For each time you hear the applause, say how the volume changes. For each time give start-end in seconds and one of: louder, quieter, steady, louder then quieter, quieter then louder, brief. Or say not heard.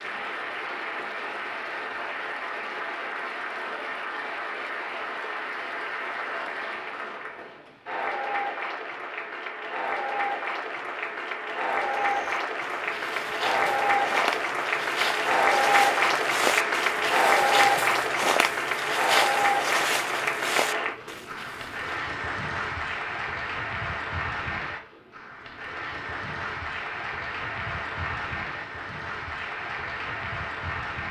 0.0-31.0 louder then quieter.